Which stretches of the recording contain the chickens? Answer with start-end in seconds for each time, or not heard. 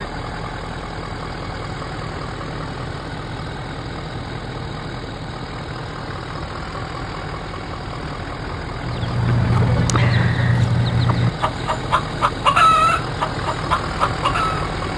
8.8-14.7.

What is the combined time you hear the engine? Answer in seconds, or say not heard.
15 s.